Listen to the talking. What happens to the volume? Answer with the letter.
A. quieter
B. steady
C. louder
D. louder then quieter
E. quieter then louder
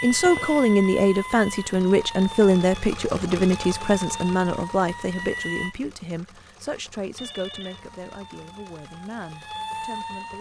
A.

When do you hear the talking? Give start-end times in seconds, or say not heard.
0.0-10.3.